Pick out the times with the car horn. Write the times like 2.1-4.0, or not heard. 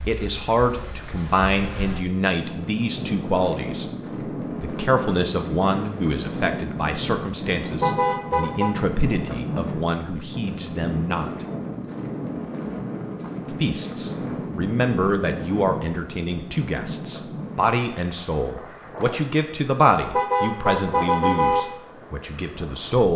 7.8-8.8, 20.1-21.6.